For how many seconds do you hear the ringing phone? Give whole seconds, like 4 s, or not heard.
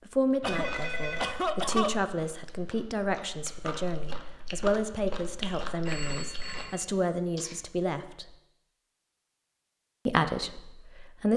2 s.